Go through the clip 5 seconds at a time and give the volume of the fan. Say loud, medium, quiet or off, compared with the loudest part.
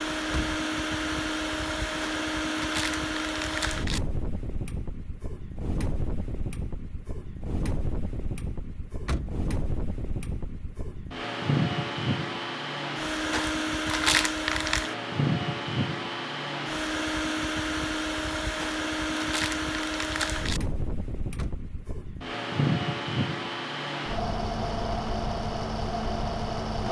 loud, medium, loud, loud, loud, loud.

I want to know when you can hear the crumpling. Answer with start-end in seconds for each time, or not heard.
2.0-4.0, 13.3-14.9, 18.6-20.6.